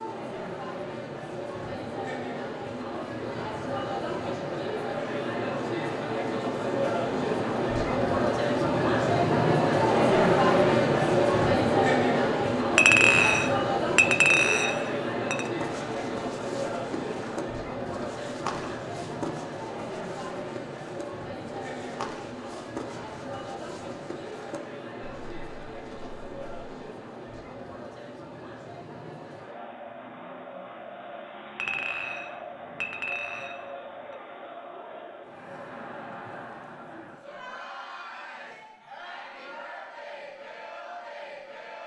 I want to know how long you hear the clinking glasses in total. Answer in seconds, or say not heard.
5 s.